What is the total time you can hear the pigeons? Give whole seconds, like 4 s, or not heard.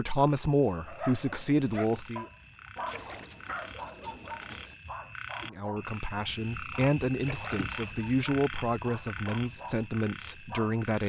2 s.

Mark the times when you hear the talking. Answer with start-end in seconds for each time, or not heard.
0.0-2.2, 5.5-11.0.